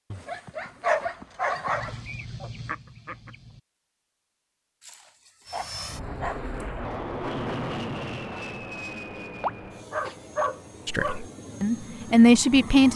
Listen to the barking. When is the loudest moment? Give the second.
1 s.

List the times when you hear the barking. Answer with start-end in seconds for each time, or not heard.
0.1-1.9, 4.8-6.8, 9.4-11.2.